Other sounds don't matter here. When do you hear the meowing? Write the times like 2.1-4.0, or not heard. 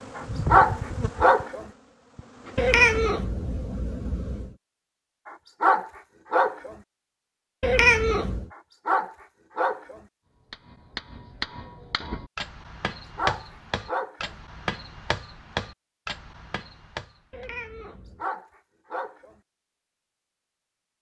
2.5-4.5, 7.6-8.4, 17.3-18.2.